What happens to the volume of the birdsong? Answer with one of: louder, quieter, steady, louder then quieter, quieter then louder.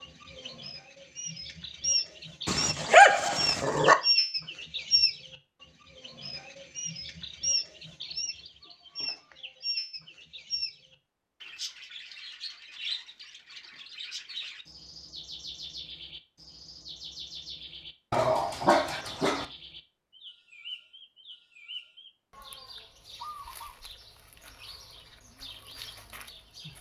quieter.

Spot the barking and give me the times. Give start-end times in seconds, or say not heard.
2.5-4.0, 18.1-19.4.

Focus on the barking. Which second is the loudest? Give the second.
3 s.